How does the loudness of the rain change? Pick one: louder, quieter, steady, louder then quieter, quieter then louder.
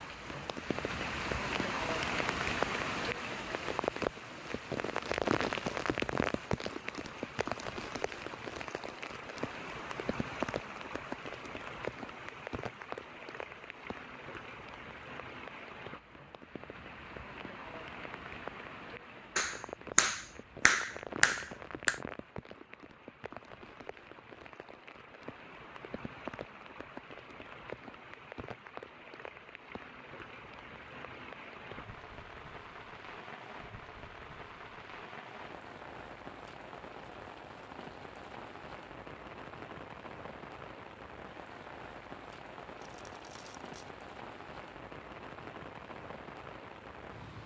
quieter.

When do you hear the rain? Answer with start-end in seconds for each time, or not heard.
0.0-47.4.